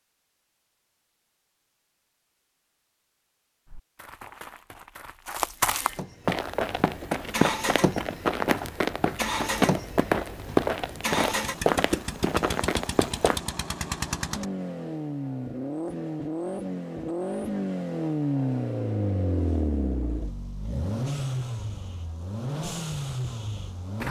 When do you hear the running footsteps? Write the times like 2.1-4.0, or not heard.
3.6-13.4.